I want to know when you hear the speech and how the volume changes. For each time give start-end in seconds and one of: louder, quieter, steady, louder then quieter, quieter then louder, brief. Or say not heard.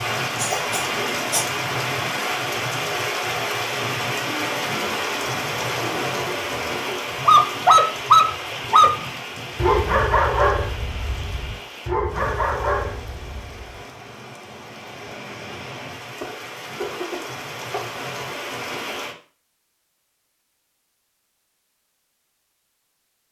not heard.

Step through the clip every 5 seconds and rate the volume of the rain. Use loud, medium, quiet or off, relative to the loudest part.
loud, loud, quiet, medium, off.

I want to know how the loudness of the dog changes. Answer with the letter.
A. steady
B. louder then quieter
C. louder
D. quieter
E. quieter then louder
B.